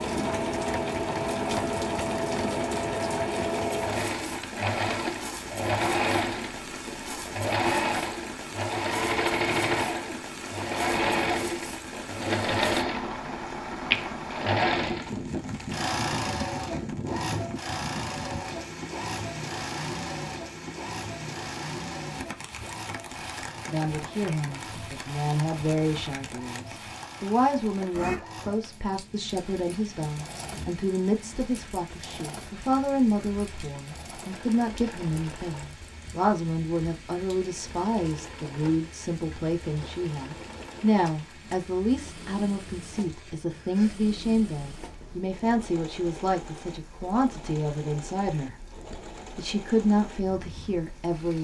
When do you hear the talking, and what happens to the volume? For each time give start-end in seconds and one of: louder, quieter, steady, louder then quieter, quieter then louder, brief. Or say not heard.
23.7-51.3 steady.